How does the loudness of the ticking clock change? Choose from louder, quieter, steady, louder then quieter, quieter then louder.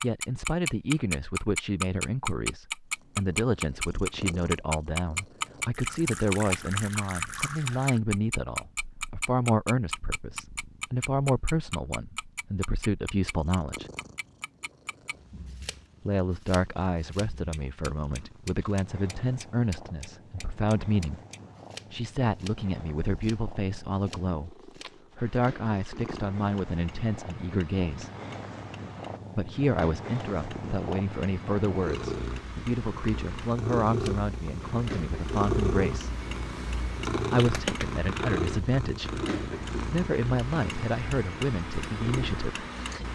quieter then louder.